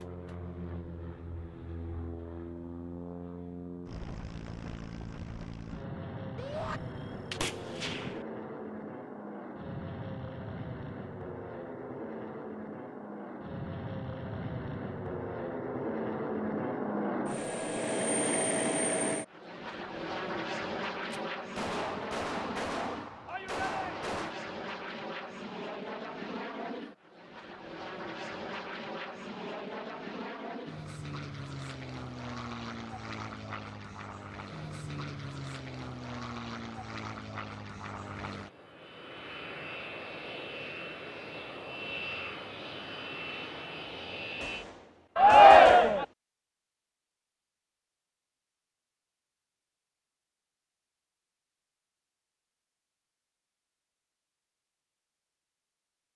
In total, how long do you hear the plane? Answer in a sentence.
You can hear the plane for 45 seconds altogether.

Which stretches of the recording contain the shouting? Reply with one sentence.
You can hear the shouting from 6.3 to 6.8 s, from 23.2 to 24.1 s and from 45.1 to 46.0 s.